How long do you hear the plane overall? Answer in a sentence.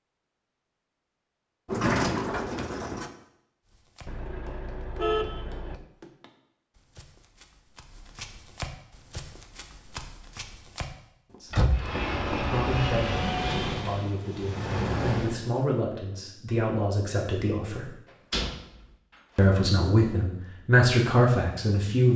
You can hear the plane for 4 seconds altogether.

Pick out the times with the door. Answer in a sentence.
The door can be heard from 1.6 to 3.1 s, from 11.5 to 12.0 s and from 18.3 to 18.9 s.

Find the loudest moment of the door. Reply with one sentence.
The loudest moment of the door is at 2 seconds.